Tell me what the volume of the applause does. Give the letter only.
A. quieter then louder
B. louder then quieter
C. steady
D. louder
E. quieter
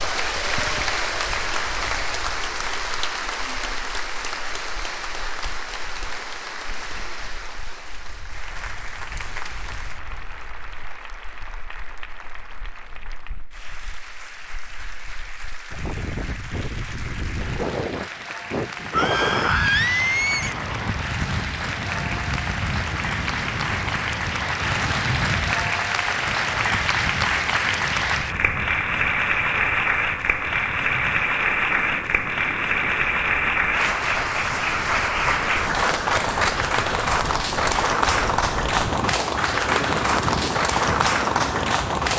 A.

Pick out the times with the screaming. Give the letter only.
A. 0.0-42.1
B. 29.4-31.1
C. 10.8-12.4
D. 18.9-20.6
D.